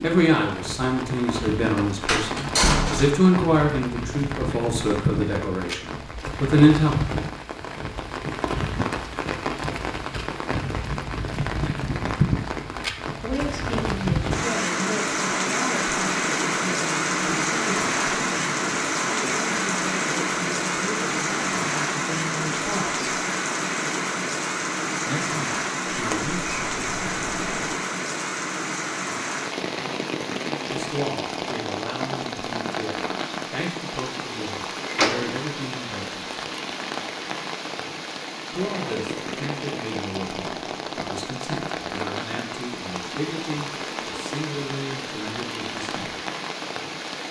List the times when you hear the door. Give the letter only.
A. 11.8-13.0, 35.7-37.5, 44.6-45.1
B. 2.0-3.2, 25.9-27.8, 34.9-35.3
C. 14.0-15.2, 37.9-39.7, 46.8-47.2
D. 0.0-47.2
B.